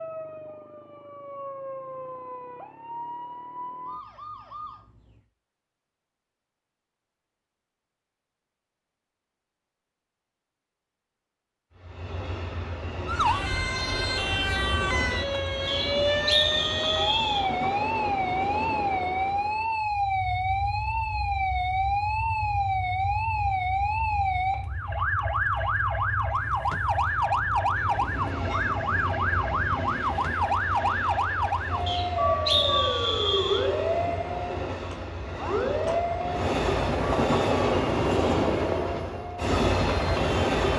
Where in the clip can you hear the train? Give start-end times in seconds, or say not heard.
11.7-40.7.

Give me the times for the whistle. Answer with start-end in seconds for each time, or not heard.
15.7-17.4, 31.9-33.6.